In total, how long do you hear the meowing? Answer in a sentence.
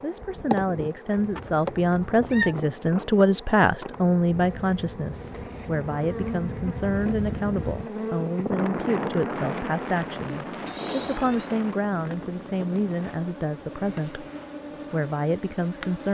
You can hear the meowing for 2 seconds altogether.